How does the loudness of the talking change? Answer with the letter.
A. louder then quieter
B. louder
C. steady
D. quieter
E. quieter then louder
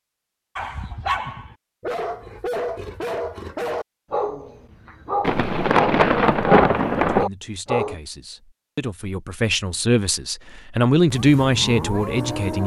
B.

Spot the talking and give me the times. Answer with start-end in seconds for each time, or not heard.
7.0-12.6.